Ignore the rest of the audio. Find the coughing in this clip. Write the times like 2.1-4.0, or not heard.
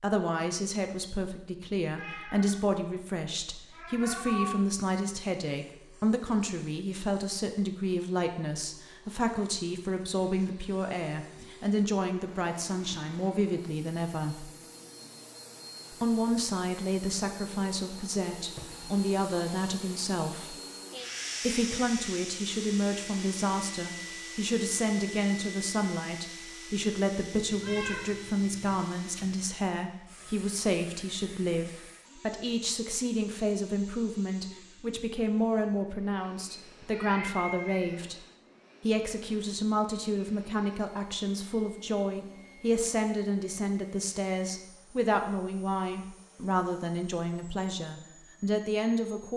not heard.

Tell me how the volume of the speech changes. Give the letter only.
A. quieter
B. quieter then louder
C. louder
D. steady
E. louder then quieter
D.